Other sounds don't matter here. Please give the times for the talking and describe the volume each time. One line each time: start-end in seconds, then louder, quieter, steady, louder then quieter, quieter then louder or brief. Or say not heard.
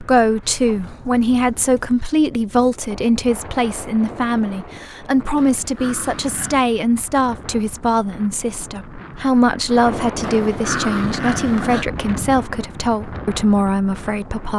0.0-14.5 steady.